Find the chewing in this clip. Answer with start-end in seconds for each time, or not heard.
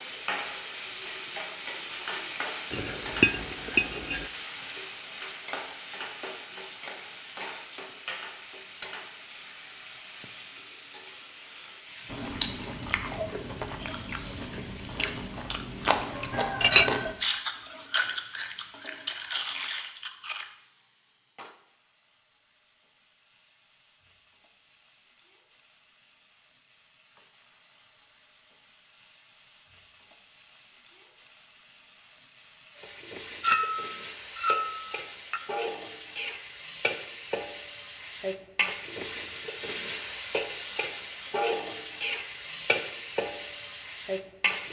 12.1-20.5.